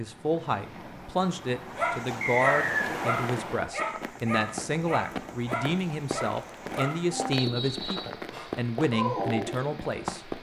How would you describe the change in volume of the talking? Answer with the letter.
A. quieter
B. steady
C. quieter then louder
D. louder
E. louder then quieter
B.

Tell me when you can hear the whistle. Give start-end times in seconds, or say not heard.
2.2-2.9, 7.3-8.2.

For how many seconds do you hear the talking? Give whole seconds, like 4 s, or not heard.
10 s.